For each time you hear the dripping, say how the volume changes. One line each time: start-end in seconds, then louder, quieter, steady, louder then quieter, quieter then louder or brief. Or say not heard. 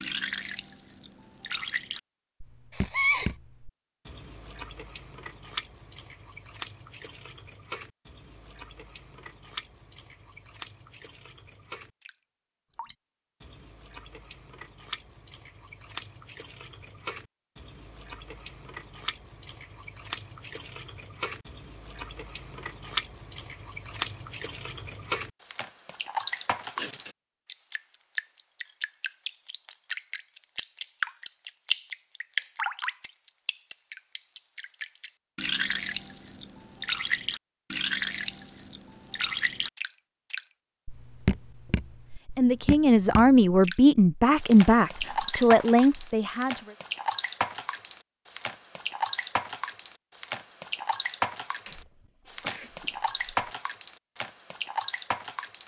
0.0-55.6 louder.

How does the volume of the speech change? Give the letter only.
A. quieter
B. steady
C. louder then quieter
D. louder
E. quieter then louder
E.